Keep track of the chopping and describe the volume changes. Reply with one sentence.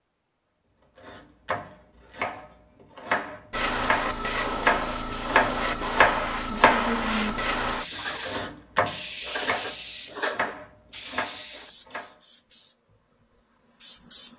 The loudness of the chopping goes up, then down.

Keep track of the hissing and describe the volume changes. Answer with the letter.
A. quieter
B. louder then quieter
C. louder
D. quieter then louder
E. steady
A.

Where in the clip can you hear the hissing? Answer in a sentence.
You can hear the hissing from 3.5 to 14.3 s.